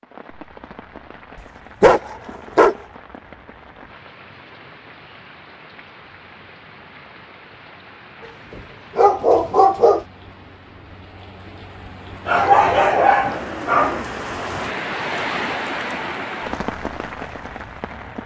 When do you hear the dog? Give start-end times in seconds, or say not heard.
1.8-2.8, 8.6-10.1, 12.2-14.0.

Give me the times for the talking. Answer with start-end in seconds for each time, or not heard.
not heard.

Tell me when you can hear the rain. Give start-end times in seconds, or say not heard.
0.0-18.2.